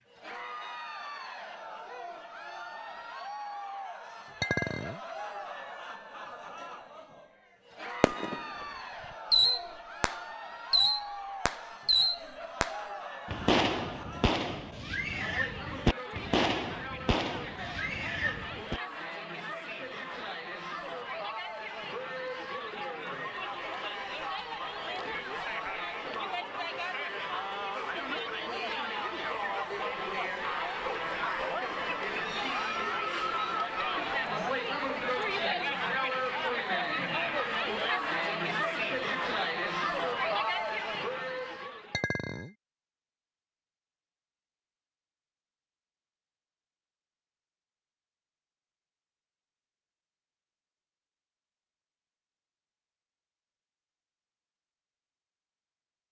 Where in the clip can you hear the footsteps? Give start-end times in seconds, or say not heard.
not heard.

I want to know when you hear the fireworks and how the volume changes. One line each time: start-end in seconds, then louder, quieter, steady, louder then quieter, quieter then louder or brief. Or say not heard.
8.0-8.7 brief
9.3-18.8 quieter.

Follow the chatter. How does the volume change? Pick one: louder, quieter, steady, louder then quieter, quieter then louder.
louder.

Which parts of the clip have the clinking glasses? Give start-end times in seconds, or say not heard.
4.4-5.0, 41.9-42.5.